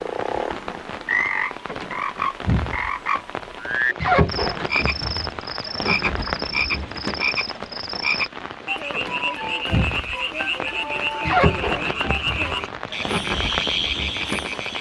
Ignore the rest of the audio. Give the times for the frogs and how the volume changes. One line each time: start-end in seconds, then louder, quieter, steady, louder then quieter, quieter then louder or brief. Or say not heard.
0.0-14.7 steady.